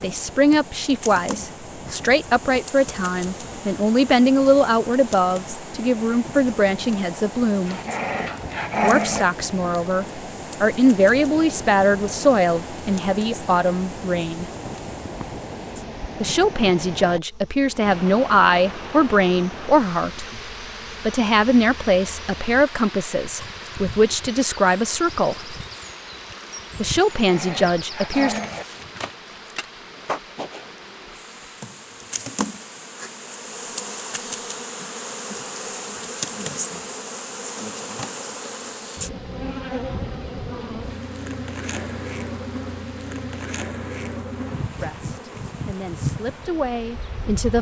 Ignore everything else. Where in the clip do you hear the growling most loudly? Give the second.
9 s.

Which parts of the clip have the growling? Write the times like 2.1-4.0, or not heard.
7.7-9.2, 27.1-28.6.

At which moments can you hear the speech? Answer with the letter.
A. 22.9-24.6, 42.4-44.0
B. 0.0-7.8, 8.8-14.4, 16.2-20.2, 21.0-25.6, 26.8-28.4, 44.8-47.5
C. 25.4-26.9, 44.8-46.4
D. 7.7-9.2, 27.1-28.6
B.